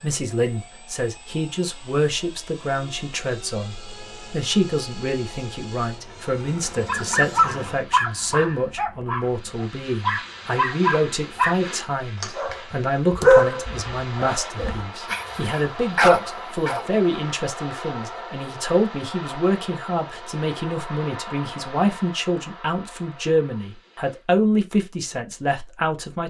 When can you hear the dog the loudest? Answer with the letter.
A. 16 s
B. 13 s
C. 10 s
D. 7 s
B.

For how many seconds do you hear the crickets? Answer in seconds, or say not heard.
not heard.